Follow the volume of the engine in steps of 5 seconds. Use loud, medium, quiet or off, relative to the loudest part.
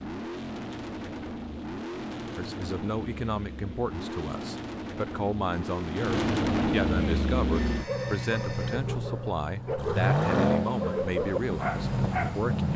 medium, loud, loud.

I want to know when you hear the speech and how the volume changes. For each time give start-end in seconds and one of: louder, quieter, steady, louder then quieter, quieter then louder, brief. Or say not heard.
2.4-12.7 steady.